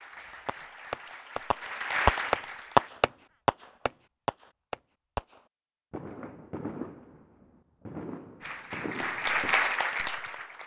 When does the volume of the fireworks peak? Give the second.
3 s.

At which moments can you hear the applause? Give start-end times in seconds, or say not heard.
0.0-2.9, 8.4-10.6.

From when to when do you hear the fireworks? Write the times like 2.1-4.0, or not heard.
0.5-9.6.